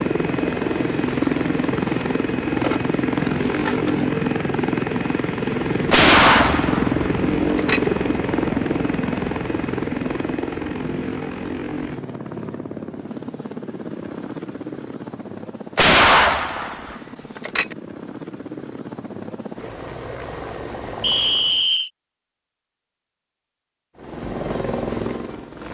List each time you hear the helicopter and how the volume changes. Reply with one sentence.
You can hear the helicopter from 0.0 to 21.6 s, getting quieter; and briefly from 23.9 to 25.6 s.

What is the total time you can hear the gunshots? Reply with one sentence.
You can hear the gunshots for 4 seconds altogether.